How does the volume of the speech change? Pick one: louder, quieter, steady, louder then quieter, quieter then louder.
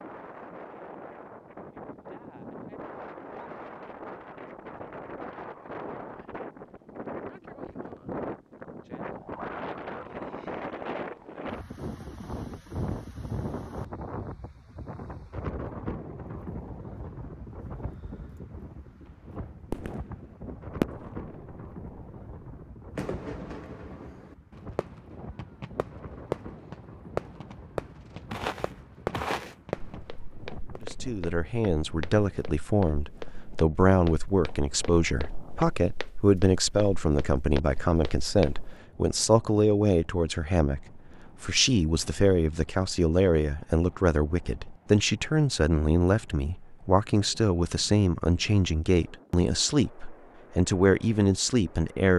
steady.